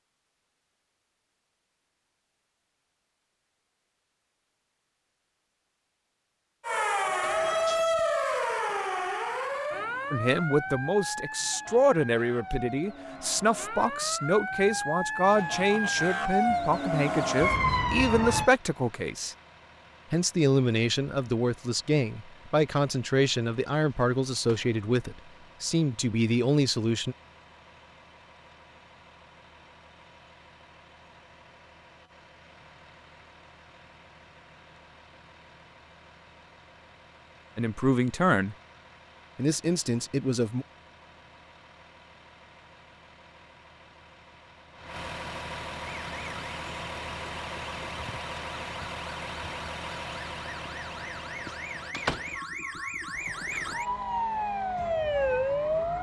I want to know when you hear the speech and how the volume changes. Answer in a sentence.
The speech can be heard from 10.1 to 19.4 s, at a steady volume; from 20.1 to 27.1 s, at a steady volume; briefly from 37.5 to 38.5 s; and briefly from 39.4 to 40.6 s.